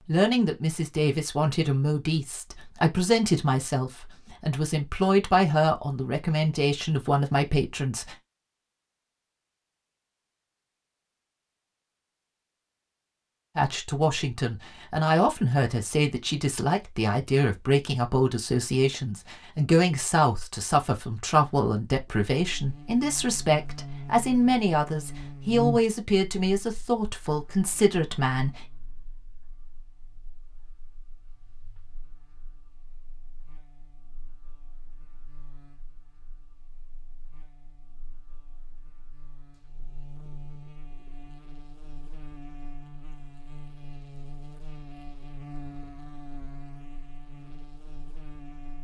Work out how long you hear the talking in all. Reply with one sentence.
The talking can be heard for 23 seconds in total.